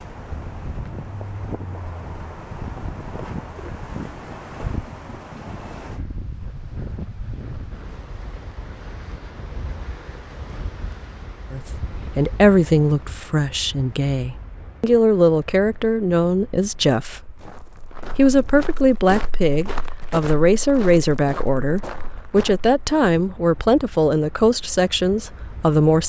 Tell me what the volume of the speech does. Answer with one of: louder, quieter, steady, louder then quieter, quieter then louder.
steady.